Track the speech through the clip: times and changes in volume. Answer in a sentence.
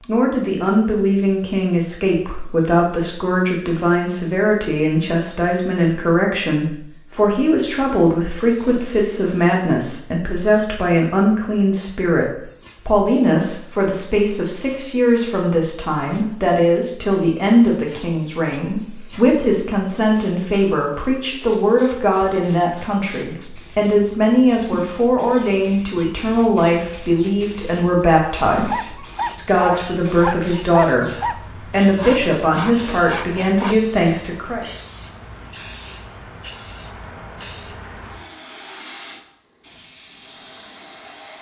The speech can be heard from 0.0 to 31.1 s, at a steady volume; and briefly from 31.7 to 34.6 s.